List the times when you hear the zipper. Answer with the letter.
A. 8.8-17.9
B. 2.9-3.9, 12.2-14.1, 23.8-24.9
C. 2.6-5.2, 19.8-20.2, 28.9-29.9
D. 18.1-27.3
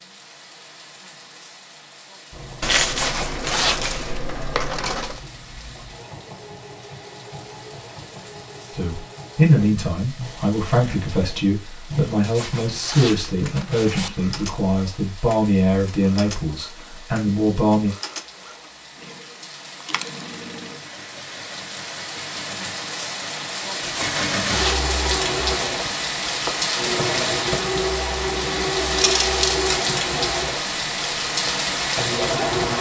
B.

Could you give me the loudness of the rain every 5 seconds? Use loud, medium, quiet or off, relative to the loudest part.
quiet, quiet, quiet, quiet, medium, loud, loud.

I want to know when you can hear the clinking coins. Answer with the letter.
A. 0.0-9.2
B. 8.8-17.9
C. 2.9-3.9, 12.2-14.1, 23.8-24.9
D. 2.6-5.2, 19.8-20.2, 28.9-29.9
D.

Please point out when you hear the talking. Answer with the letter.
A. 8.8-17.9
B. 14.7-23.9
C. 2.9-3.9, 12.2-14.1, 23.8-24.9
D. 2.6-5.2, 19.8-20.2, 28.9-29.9
A.